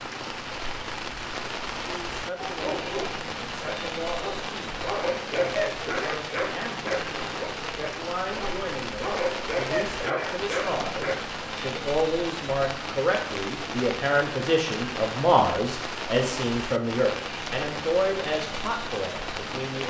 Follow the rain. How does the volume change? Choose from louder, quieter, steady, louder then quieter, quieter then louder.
steady.